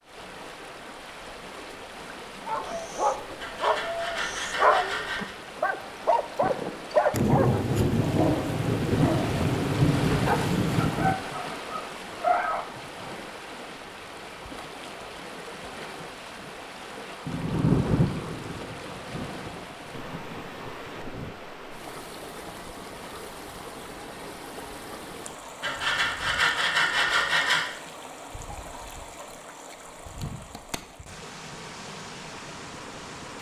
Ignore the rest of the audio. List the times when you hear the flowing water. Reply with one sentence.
The flowing water can be heard from 0.0 to 33.3 s.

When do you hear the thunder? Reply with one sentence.
The thunder can be heard from 7.1 to 11.2 s and from 17.2 to 21.4 s.